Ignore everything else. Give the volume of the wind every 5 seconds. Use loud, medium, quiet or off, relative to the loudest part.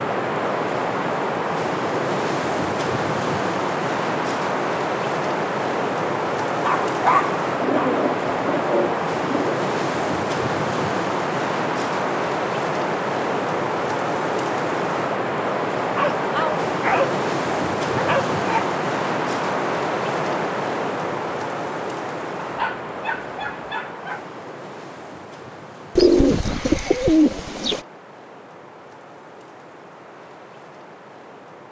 loud, loud, loud, loud, medium, quiet, quiet.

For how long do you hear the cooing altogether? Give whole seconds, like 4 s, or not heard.
4 s.